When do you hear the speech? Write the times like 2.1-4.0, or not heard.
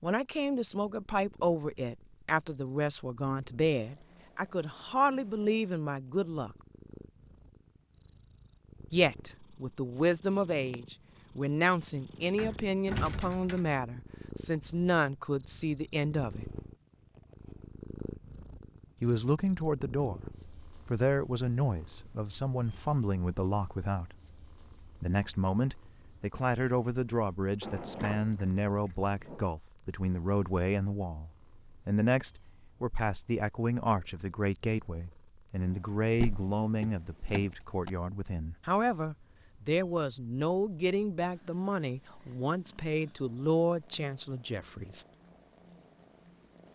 0.0-6.5, 8.9-16.5, 19.0-20.2, 20.9-24.1, 24.9-45.0.